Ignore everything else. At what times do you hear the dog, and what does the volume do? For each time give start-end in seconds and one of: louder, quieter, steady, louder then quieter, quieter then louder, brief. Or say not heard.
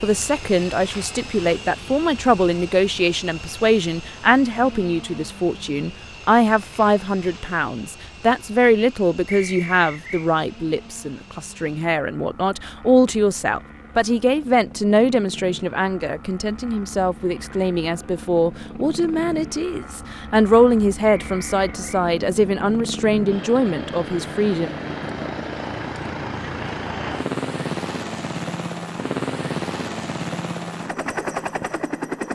not heard.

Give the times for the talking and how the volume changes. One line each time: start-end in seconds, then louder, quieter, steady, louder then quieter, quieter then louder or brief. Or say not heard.
0.0-24.7 steady.